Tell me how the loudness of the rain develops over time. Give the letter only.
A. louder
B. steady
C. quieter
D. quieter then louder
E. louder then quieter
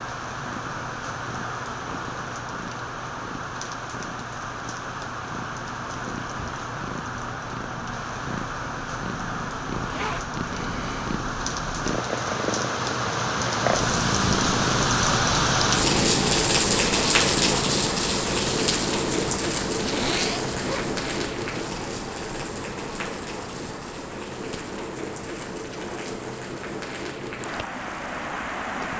E.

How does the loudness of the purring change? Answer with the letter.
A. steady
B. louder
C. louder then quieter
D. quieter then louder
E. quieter
C.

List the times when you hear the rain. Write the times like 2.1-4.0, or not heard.
0.0-28.9.